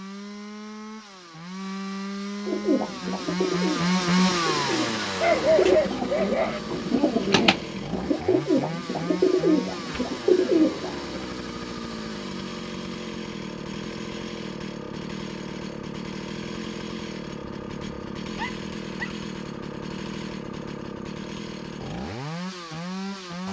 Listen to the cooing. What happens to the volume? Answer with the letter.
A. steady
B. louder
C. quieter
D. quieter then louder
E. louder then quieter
B.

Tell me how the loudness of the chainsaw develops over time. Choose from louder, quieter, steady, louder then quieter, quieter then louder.
quieter.